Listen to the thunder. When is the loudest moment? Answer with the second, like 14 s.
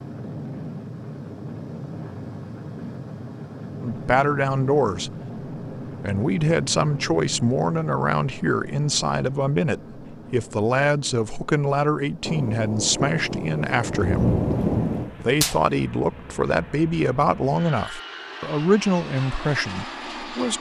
14 s.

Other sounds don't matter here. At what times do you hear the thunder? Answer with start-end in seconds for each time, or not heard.
12.2-15.7.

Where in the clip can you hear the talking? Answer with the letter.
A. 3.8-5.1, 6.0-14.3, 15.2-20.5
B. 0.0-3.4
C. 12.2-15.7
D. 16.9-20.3
A.